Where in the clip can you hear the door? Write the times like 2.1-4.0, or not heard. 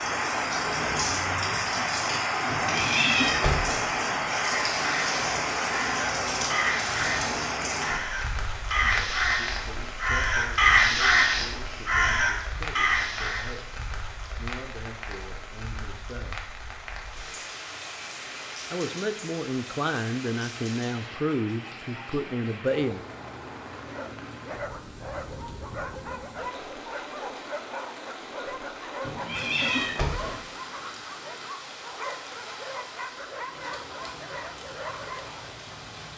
not heard.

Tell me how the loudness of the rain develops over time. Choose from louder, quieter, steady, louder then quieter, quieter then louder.
quieter.